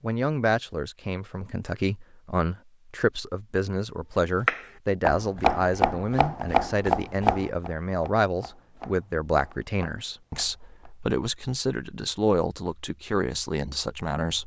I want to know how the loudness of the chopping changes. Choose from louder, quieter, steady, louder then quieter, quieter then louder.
quieter.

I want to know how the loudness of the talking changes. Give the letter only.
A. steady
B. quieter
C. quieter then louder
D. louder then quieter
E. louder
A.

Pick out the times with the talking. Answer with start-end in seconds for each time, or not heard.
0.0-14.4.